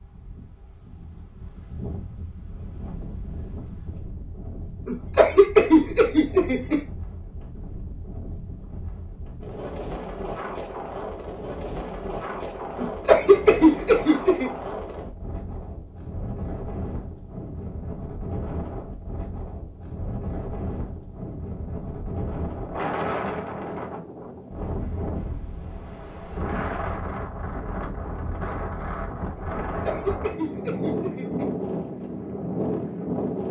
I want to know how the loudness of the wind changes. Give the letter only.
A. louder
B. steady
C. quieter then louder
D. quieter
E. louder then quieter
A.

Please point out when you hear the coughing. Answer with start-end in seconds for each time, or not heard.
4.8-6.8, 12.8-14.5, 29.6-31.4.